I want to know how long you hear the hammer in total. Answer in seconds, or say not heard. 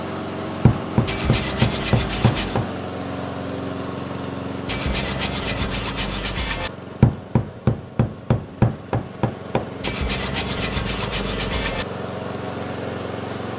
5 s.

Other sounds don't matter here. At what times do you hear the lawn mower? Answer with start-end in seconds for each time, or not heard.
0.0-13.5.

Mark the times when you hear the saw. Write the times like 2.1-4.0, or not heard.
1.1-2.6, 4.7-6.7, 9.8-11.8.